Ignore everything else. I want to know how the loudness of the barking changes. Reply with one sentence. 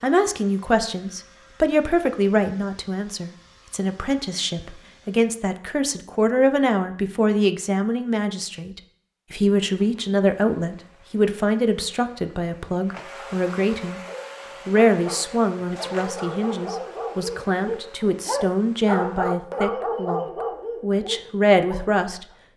The loudness of the barking goes up, then down.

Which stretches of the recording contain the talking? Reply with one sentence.
The talking can be heard from 0.0 to 14.0 s and from 14.7 to 22.2 s.